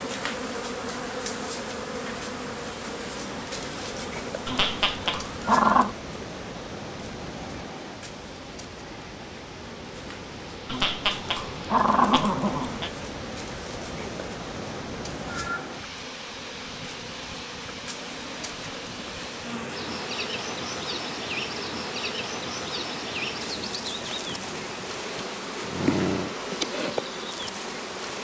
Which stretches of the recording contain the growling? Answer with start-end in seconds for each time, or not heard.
4.5-5.9, 10.7-12.9, 25.1-26.4.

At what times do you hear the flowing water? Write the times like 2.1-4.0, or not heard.
0.0-28.1.